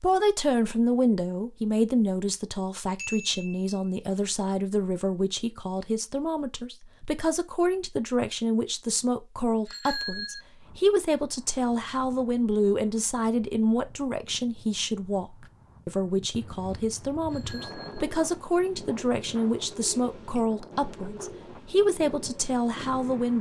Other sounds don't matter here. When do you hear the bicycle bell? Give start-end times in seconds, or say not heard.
3.0-3.8, 9.7-10.4, 17.2-18.1.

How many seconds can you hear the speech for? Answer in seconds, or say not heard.
23 s.